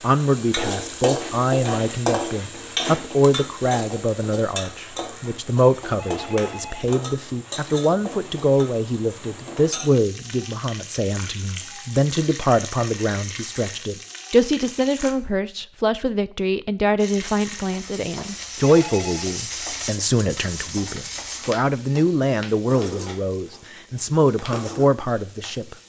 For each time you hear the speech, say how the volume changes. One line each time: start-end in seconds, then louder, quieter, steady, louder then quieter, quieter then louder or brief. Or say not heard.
0.0-25.8 steady.